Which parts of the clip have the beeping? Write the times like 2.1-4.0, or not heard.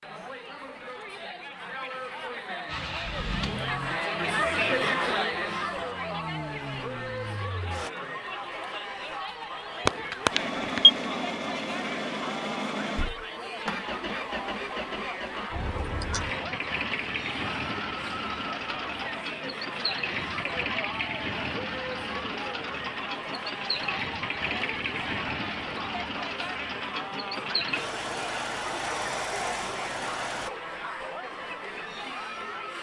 9.8-10.9.